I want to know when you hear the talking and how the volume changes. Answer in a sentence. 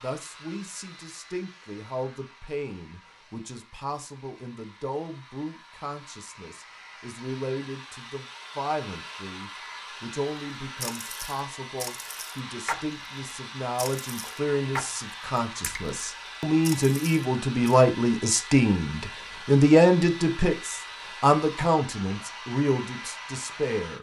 The talking can be heard from 0.0 to 23.9 s, getting louder.